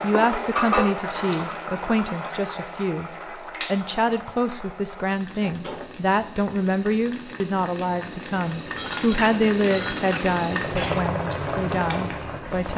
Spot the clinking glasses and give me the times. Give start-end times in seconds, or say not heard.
0.1-0.9, 5.3-6.6, 8.8-11.0.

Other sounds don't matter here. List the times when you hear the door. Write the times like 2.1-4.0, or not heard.
not heard.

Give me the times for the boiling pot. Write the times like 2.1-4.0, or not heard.
0.0-12.7.